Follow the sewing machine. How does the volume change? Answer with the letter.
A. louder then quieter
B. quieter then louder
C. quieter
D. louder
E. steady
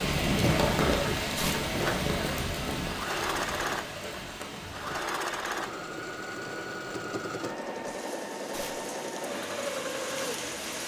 E.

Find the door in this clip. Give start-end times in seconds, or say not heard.
not heard.